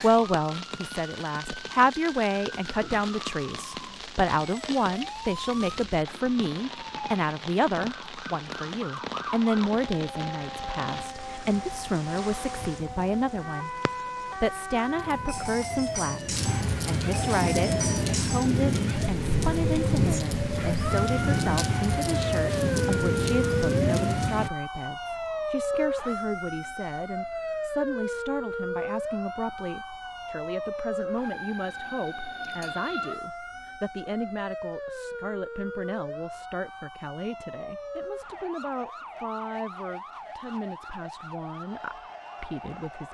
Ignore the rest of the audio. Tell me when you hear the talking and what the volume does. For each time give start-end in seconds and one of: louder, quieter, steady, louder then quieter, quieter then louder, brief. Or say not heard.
0.0-43.0 quieter.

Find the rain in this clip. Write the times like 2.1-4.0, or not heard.
0.0-24.5.